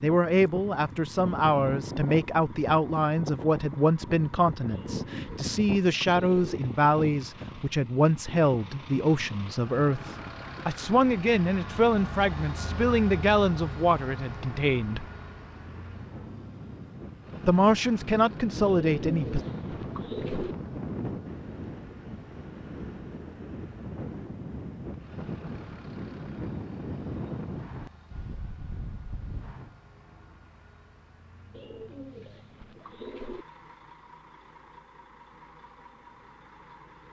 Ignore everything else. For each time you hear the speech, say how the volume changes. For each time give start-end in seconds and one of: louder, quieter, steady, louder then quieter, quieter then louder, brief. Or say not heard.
0.0-15.1 steady
17.4-19.4 brief.